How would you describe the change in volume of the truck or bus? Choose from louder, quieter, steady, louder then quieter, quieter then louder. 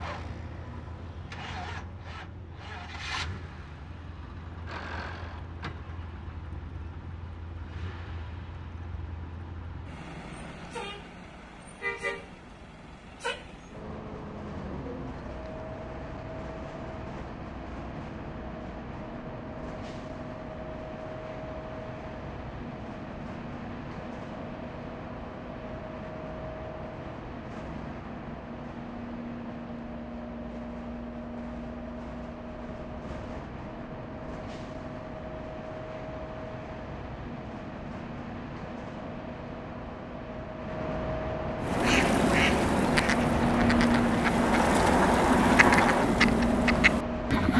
louder.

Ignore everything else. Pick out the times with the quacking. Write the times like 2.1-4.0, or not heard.
41.6-47.5.